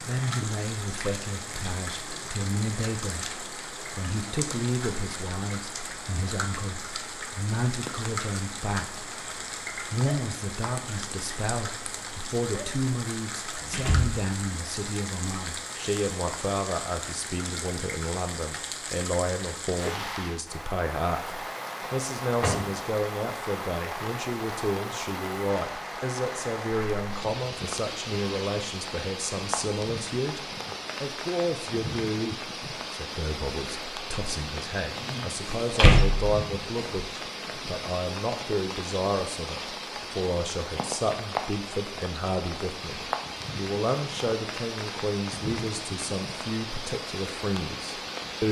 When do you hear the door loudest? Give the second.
36 s.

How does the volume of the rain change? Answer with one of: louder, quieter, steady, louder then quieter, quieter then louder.
steady.